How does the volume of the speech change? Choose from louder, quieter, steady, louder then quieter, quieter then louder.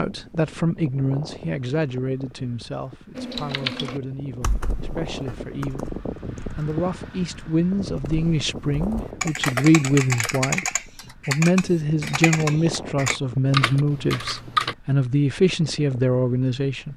quieter then louder.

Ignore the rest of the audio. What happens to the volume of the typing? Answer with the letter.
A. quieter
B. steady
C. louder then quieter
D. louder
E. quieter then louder
E.